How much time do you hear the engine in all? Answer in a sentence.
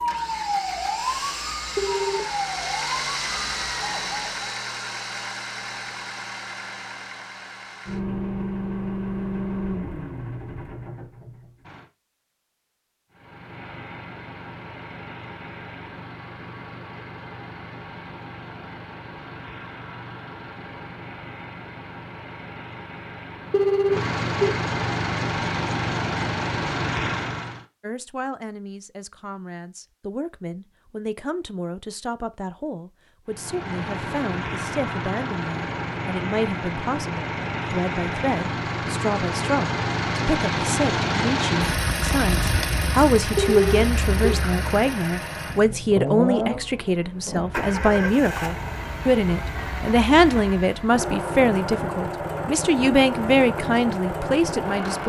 You can hear the engine for 48 seconds altogether.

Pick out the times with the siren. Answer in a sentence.
The siren can be heard from 0.0 to 4.5 s.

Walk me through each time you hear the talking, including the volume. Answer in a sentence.
You can hear the talking from 27.8 to 55.0 s, getting louder.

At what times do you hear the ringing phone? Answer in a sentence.
The ringing phone can be heard from 1.8 to 2.2 s, from 23.5 to 24.5 s and from 43.4 to 44.4 s.